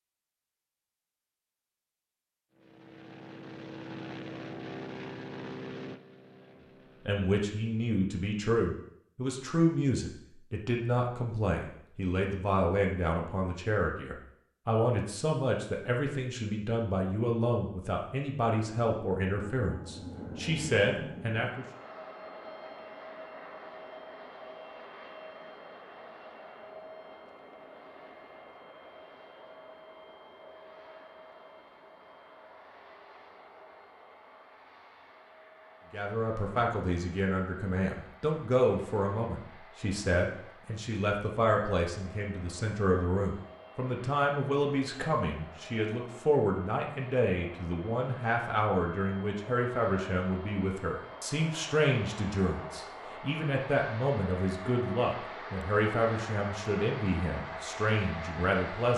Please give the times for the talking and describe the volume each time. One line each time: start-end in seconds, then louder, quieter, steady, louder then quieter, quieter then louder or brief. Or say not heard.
7.0-21.6 steady
35.9-58.9 steady.